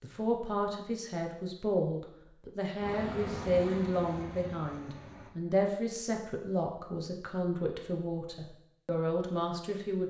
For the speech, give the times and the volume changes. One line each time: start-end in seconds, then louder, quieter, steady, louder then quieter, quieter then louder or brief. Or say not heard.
0.0-10.0 steady.